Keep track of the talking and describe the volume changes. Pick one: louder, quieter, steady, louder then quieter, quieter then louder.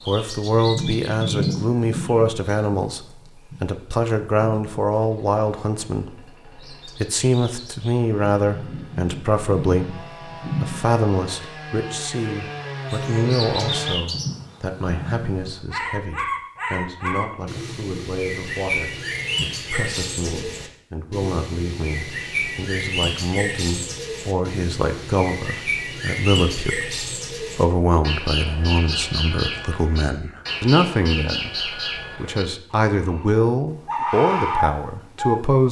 quieter then louder.